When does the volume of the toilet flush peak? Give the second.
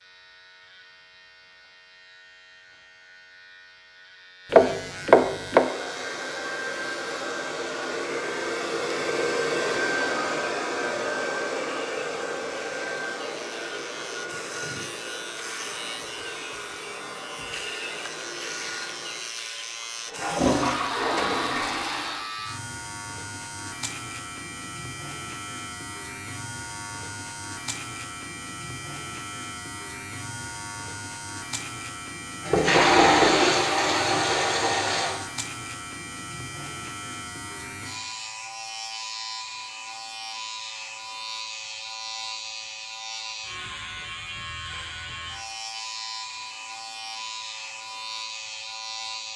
33 s.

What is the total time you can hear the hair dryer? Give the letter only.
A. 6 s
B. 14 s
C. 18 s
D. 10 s
B.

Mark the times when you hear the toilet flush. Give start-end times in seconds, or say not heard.
20.1-22.2, 32.5-35.1.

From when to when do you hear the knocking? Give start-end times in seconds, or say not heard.
4.5-5.7, 32.5-33.4.